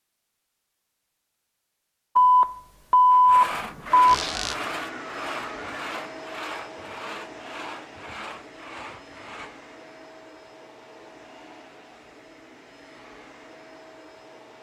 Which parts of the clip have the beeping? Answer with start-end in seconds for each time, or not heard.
2.1-4.2.